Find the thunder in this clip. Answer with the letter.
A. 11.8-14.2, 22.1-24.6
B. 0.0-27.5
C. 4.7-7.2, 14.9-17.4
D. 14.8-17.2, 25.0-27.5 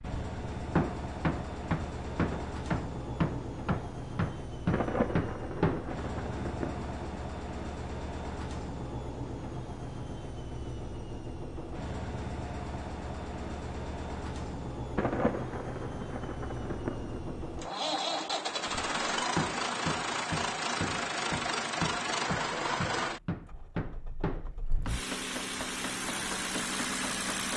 C.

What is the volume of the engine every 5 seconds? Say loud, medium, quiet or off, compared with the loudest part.
medium, medium, medium, loud, loud, loud.